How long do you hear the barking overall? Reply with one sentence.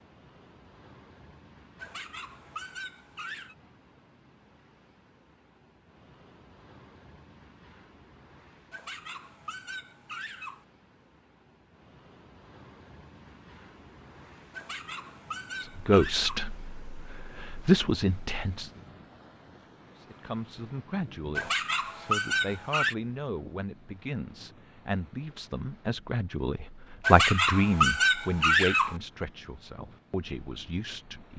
You can hear the barking for 9 seconds altogether.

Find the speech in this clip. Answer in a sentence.
You can hear the speech from 15.6 to 18.7 s and from 20.0 to 31.3 s.